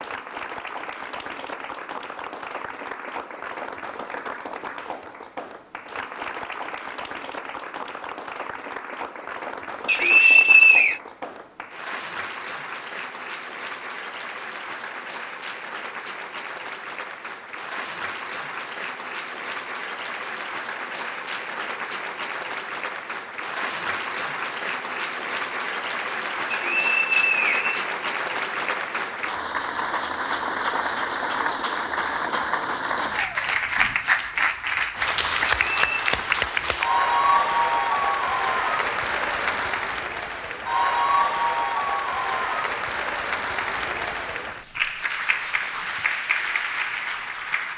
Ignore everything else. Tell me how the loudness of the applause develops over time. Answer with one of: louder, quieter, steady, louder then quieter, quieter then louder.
louder.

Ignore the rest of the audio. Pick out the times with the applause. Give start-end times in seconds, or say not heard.
0.0-47.7.